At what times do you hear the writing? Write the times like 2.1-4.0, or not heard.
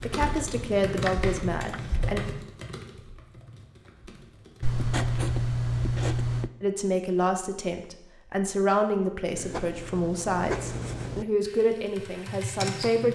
0.8-2.2, 4.6-6.5, 9.3-11.2.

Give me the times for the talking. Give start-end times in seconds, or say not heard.
0.0-2.2, 6.6-13.1.